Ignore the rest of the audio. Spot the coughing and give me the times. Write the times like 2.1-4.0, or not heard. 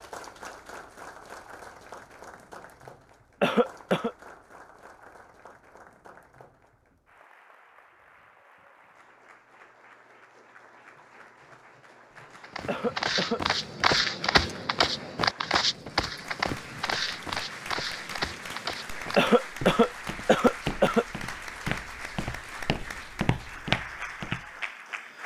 3.4-4.1, 12.7-13.8, 19.1-21.1.